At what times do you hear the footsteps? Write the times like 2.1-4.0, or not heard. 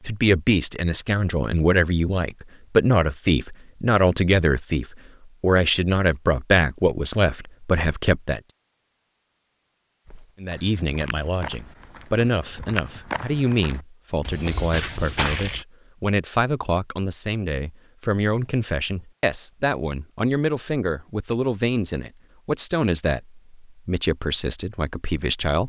10.1-15.7.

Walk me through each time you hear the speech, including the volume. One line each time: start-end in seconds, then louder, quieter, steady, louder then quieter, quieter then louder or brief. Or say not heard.
0.0-8.4 steady
10.4-25.6 steady.